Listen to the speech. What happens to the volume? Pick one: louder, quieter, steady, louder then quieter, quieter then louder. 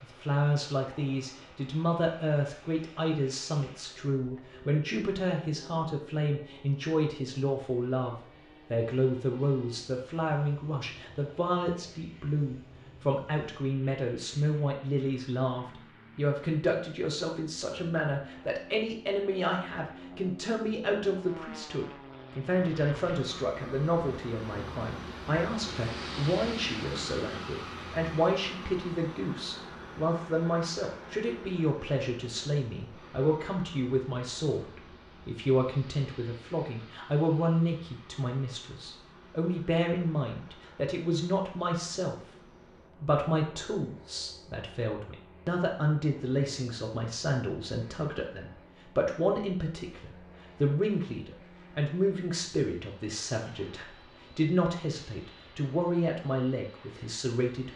steady.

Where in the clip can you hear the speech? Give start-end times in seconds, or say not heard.
0.0-42.1, 42.9-57.7.